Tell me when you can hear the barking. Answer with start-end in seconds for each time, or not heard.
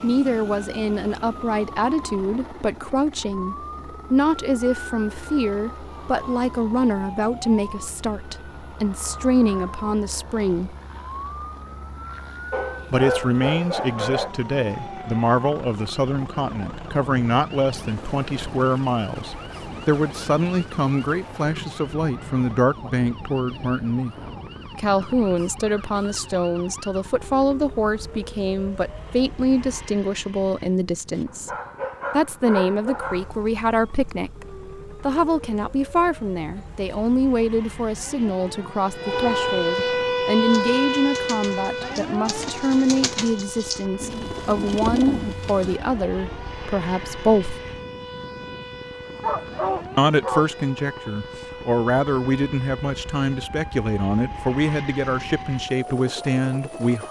12.5-14.3, 31.1-33.3, 49.2-50.5.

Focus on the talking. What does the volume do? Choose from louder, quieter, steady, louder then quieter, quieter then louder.
steady.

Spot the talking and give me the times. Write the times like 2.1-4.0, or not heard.
0.0-10.8, 12.9-24.1, 24.8-31.5, 32.1-47.6, 50.0-57.0.